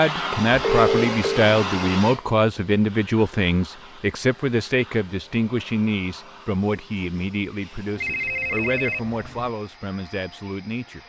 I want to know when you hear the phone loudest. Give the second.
1 s.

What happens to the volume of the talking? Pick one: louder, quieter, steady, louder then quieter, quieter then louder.
quieter.